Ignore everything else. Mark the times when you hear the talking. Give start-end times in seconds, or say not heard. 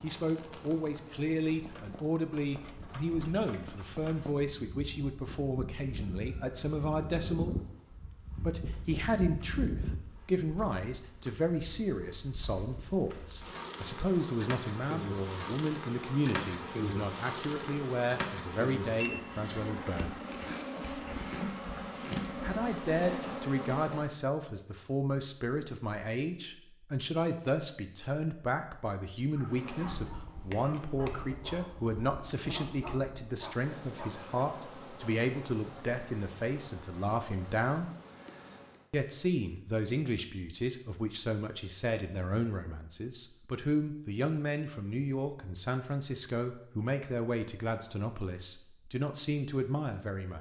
0.0-7.5, 8.4-20.1, 22.4-37.9, 38.9-50.3.